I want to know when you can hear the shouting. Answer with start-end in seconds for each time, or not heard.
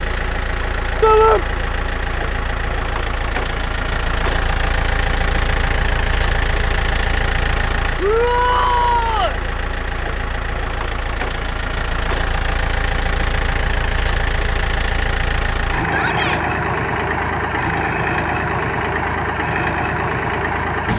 1.0-1.4, 8.0-9.3, 15.8-16.4.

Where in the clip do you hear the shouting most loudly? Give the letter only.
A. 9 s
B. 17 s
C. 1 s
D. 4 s
C.